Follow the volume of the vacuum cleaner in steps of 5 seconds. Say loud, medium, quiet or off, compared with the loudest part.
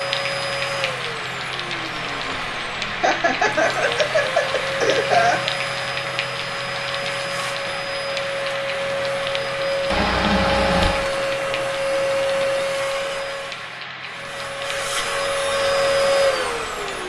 medium, medium, loud, loud.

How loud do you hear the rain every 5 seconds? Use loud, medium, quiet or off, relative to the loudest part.
loud, loud, medium, medium.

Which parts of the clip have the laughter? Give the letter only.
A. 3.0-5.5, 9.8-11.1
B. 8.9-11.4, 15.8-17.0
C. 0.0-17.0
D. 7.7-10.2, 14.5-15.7
A.